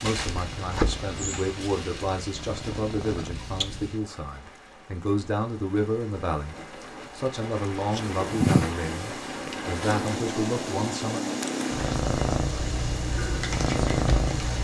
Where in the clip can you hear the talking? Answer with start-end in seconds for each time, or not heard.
0.0-6.5, 7.2-11.2.